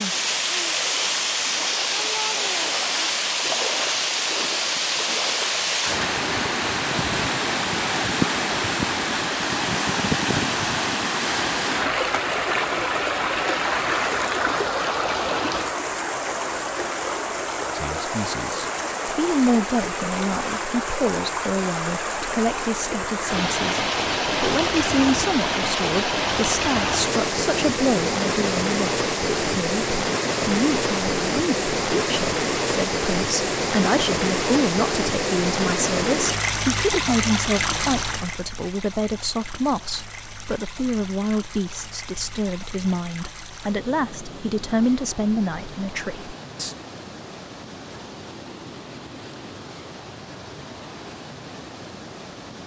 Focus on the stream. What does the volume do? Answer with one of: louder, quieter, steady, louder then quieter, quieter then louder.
quieter.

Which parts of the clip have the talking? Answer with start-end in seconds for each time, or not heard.
17.8-46.8.